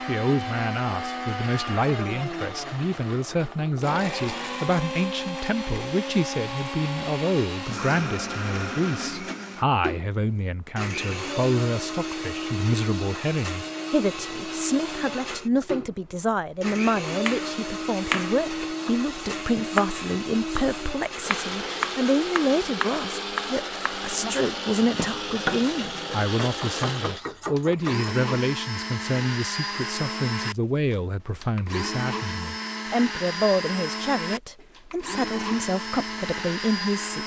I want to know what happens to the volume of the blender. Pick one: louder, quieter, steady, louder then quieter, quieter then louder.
steady.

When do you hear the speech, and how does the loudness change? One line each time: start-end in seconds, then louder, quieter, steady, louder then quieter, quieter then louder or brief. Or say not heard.
0.1-37.2 steady.